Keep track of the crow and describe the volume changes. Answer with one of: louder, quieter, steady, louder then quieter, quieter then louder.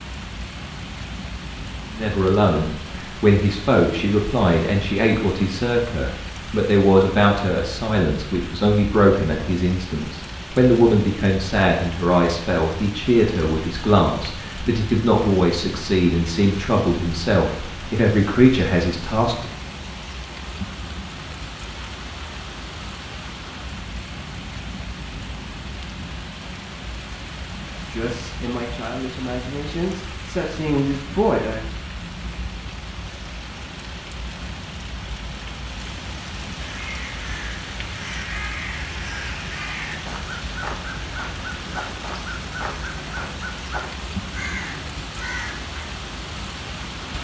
steady.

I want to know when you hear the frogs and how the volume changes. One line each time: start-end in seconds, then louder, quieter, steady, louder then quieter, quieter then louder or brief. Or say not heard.
not heard.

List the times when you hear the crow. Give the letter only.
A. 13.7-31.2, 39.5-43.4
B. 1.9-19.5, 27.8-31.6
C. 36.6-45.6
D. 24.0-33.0
C.